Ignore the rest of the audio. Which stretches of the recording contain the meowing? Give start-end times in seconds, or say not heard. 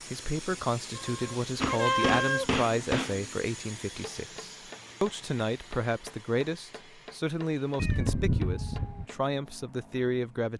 0.9-2.5, 7.8-9.1.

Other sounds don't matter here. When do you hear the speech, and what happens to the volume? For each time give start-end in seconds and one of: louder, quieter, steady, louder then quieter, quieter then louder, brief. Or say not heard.
0.1-10.5 steady.